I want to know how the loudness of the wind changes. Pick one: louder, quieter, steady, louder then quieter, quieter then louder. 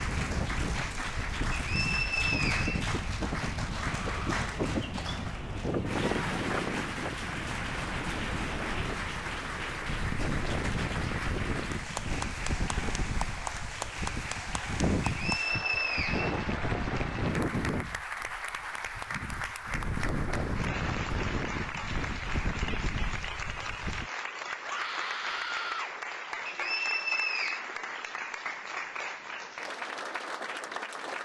steady.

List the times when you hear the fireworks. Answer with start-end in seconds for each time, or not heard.
not heard.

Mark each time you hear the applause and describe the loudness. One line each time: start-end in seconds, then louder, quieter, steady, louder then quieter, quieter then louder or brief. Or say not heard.
0.0-31.2 steady.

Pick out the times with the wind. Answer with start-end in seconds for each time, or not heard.
0.0-24.1.